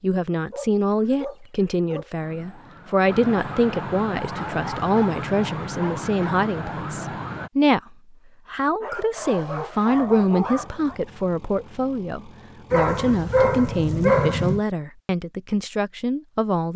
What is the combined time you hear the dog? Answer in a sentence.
You can hear the dog for 8 seconds altogether.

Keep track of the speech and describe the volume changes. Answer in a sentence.
The loudness of the speech stays about the same.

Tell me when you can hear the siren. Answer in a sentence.
The siren can be heard from 2.2 to 7.5 s.